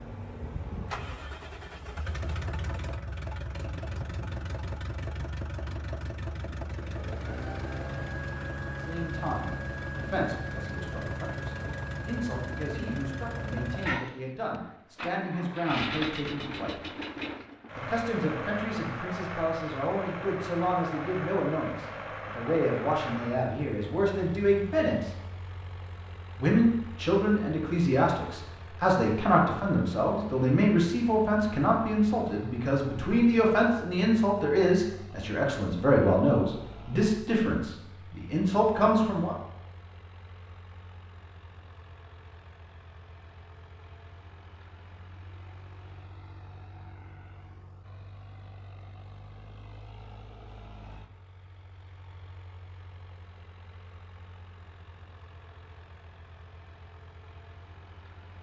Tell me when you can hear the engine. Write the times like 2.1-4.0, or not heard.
0.0-58.3.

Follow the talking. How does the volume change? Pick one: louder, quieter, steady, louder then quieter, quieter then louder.
louder.